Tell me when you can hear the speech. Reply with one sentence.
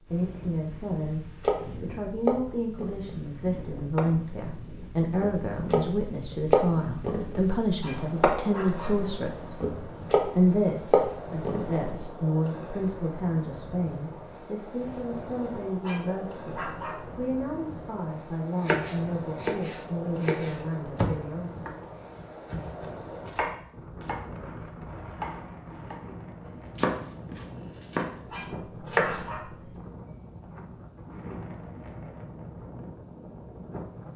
You can hear the speech from 0.0 to 1.2 s, from 1.8 to 9.6 s and from 10.2 to 21.7 s.